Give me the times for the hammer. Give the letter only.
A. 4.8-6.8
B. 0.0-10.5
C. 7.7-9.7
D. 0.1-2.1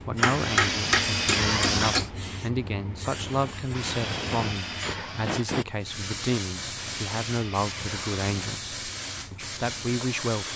D.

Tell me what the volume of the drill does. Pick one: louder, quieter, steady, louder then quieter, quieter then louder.
quieter.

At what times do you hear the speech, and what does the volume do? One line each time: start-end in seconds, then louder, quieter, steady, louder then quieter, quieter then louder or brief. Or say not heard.
0.0-10.5 steady.